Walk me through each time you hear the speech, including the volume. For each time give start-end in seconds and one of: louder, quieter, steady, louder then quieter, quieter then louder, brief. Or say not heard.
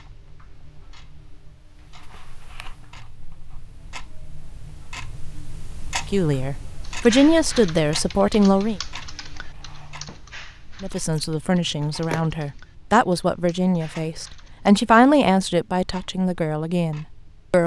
6.1-8.8 brief
10.8-17.6 louder then quieter.